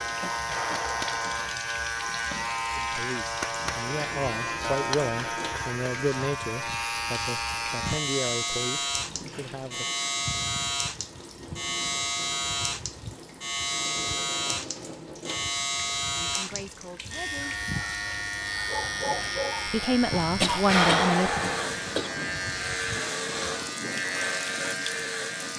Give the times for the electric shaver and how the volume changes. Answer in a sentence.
The electric shaver can be heard from 0.0 to 25.5 s, at a steady volume.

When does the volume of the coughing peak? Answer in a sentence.
The volume of the coughing peaks at 21 seconds.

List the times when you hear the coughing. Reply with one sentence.
The coughing can be heard from 0.2 to 1.5 s and from 20.4 to 22.1 s.